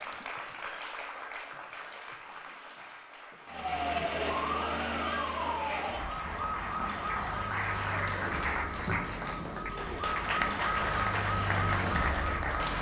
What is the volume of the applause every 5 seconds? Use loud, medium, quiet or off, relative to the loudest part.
medium, loud, loud.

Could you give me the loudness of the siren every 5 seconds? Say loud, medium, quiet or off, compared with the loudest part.
loud, medium, loud.